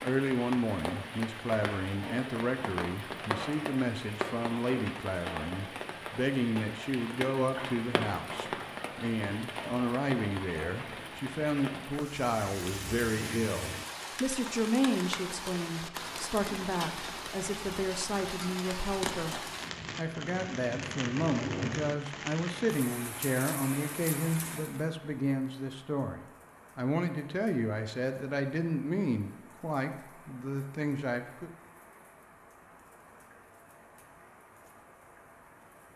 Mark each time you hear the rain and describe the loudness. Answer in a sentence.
The rain can be heard from 0.0 to 35.9 s, getting quieter.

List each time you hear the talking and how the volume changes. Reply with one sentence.
The talking can be heard from 0.0 to 31.5 s, at a steady volume.